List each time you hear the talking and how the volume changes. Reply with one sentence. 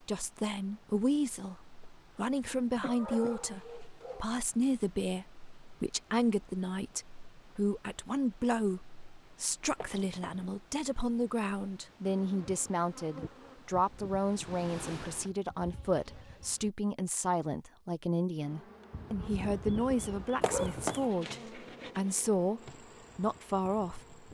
The talking can be heard from 0.1 to 24.1 s, at a steady volume.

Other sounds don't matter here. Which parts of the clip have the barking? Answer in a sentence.
You can hear the barking from 2.9 to 4.2 s and from 18.9 to 21.0 s.